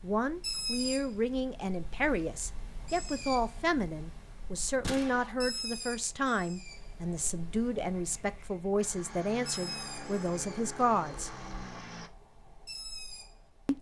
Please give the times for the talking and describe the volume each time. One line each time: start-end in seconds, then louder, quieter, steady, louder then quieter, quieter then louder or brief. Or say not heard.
0.0-11.3 steady.